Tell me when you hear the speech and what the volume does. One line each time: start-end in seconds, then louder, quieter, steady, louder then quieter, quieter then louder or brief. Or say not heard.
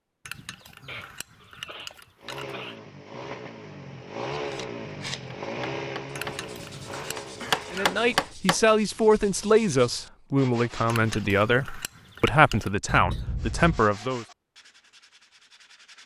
7.7-14.2 steady.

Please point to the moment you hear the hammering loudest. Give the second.
8 s.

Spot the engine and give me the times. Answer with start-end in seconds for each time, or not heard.
2.1-8.3.